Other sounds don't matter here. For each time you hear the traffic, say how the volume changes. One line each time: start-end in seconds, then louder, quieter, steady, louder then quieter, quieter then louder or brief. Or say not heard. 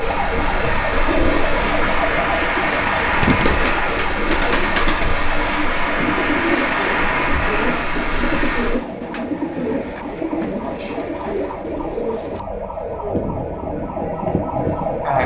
0.0-8.8 steady.